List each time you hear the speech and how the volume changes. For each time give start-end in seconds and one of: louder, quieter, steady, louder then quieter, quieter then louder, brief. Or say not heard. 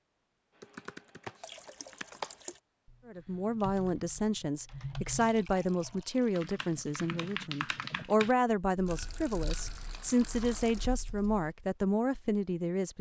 3.0-12.9 steady.